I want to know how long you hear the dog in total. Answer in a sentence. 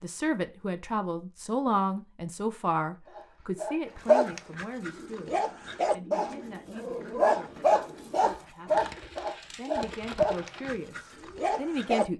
You can hear the dog for 9 seconds altogether.